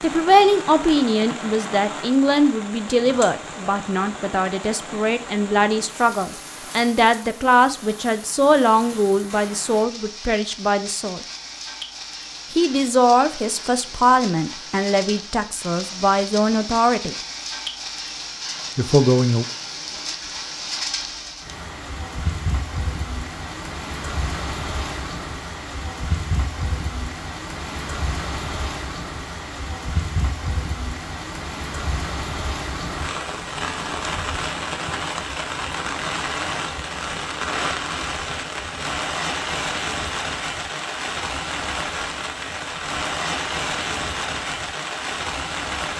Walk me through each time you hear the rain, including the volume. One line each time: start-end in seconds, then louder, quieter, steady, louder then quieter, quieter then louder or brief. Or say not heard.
0.0-45.9 louder.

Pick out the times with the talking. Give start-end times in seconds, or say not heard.
0.0-11.2, 12.5-17.1, 18.8-19.4.